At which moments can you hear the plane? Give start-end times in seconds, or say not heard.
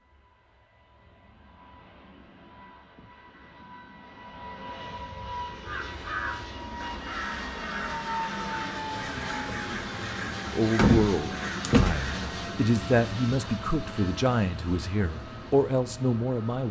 0.0-16.6.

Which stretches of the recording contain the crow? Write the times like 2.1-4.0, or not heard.
5.7-12.3.